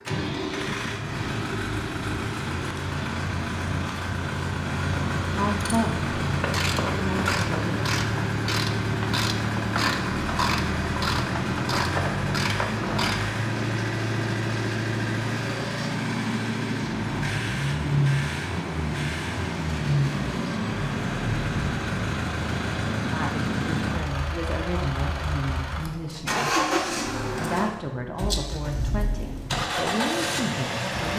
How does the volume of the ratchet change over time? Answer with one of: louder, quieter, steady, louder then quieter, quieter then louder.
steady.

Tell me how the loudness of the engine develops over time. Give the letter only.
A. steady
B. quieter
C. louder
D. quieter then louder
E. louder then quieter
A.